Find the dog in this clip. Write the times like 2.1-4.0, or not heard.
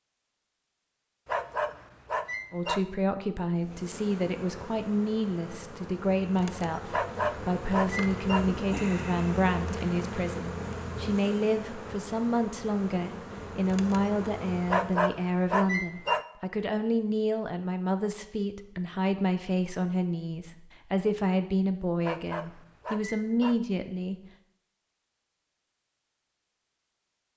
1.2-2.8, 6.9-8.4, 14.7-16.2, 22.0-23.6.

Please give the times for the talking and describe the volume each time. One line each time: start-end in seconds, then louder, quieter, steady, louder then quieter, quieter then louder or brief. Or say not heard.
2.5-24.1 steady.